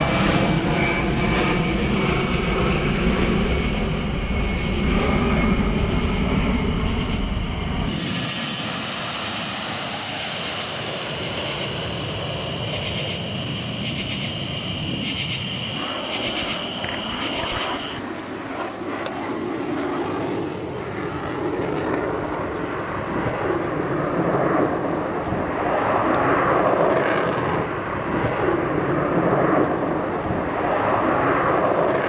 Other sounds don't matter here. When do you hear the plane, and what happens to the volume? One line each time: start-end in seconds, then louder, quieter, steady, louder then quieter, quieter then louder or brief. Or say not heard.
0.0-32.0 quieter then louder.